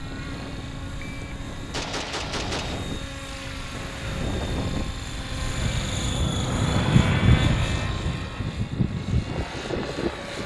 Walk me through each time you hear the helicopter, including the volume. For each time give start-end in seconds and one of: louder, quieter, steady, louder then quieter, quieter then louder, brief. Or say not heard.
0.0-10.4 louder then quieter.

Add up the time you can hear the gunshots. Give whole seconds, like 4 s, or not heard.
2 s.